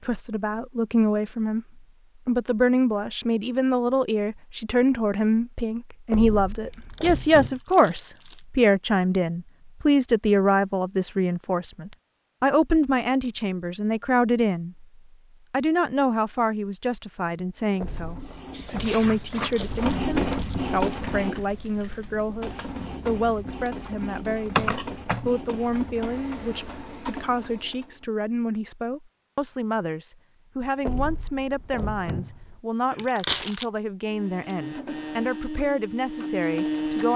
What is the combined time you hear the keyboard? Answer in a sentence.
You can hear the keyboard for 4 seconds altogether.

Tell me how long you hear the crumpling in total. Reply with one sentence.
You can hear the crumpling for 4 seconds altogether.